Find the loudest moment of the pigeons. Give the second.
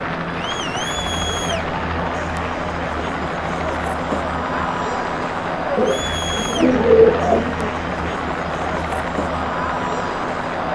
7 s.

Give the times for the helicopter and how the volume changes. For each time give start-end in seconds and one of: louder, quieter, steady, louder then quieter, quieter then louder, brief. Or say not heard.
0.0-10.7 steady.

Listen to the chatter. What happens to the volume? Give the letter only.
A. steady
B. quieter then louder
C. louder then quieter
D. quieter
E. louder
A.